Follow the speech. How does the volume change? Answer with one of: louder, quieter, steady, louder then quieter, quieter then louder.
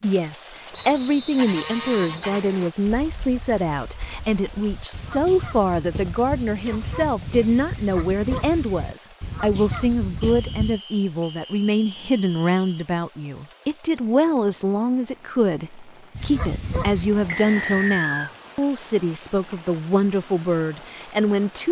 steady.